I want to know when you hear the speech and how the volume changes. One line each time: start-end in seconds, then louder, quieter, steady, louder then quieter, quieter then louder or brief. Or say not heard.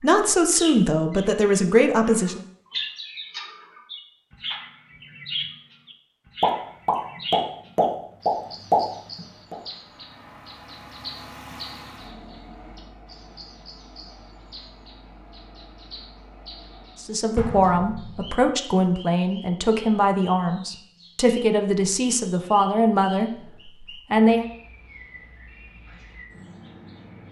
0.0-2.4 brief
17.0-24.4 steady.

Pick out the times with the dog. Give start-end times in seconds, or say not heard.
not heard.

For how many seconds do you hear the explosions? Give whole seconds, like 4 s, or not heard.
4 s.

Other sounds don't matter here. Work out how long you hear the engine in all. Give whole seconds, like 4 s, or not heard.
8 s.